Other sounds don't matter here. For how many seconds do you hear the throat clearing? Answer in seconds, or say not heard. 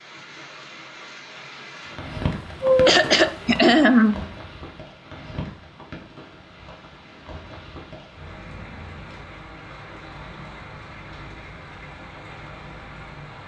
2 s.